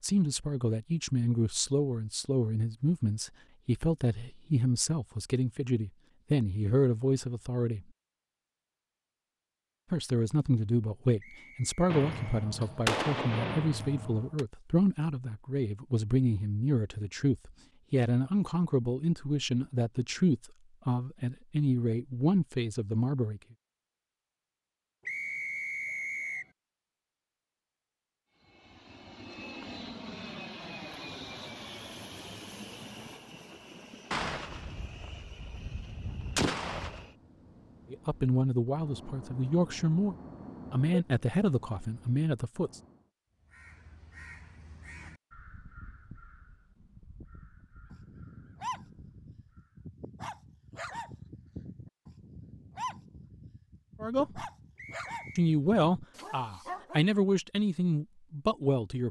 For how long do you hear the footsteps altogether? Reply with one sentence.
The footsteps can't be heard in this clip.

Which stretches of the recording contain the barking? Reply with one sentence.
You can hear the barking from 47.9 to 57.0 s.